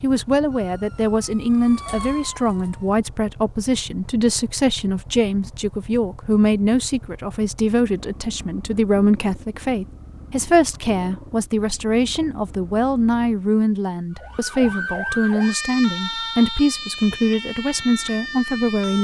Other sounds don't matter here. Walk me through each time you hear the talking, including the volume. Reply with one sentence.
The talking can be heard from 0.0 to 18.9 s, at a steady volume.